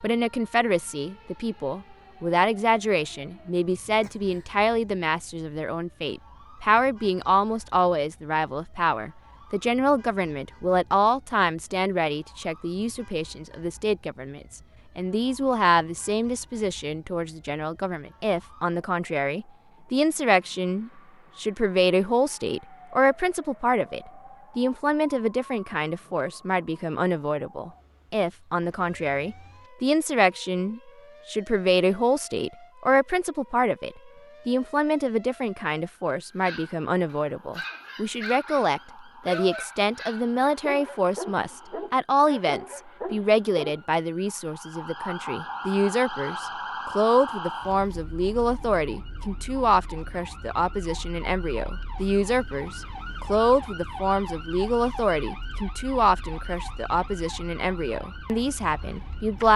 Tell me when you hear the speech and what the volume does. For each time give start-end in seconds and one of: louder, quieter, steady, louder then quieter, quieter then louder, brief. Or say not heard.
0.0-59.5 steady.